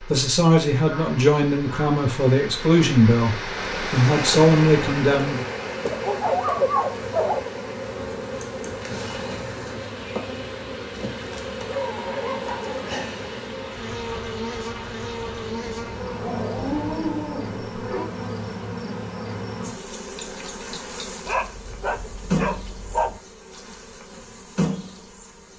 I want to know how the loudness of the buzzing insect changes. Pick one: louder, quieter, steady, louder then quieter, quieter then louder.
steady.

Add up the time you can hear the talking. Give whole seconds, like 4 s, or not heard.
5 s.